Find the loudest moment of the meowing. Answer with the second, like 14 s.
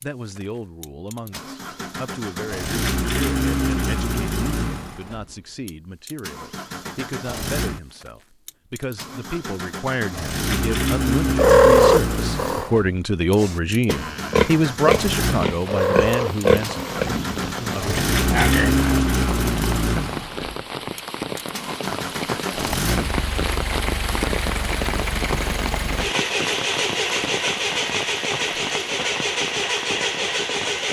12 s.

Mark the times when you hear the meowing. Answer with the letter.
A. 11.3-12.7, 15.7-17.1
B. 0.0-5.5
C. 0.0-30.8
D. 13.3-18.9
A.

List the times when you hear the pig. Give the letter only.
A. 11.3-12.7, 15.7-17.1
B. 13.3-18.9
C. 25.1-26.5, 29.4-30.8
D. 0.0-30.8
B.